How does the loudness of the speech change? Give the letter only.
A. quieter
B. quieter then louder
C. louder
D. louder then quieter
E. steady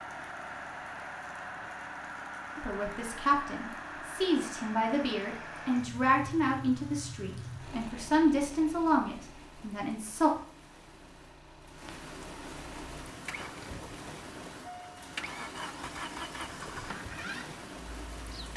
E.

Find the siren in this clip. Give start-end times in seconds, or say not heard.
not heard.